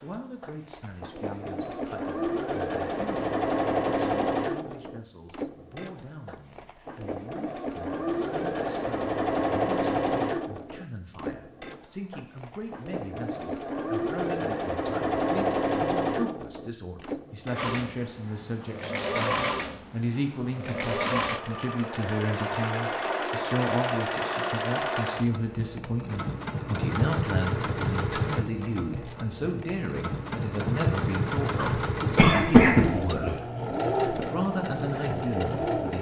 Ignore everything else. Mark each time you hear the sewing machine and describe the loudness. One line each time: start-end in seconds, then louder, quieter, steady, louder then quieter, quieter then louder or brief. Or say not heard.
0.0-35.9 steady.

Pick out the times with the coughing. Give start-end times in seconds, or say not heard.
31.6-33.3.